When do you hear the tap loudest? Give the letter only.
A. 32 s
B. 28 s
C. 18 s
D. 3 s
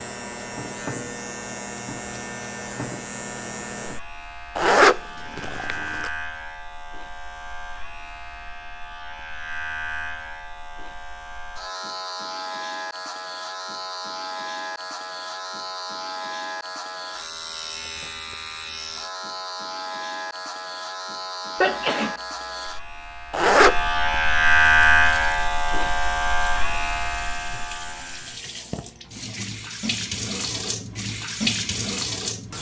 A.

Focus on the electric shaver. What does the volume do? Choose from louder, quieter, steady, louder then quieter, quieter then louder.
louder.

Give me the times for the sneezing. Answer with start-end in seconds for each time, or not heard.
21.6-22.6.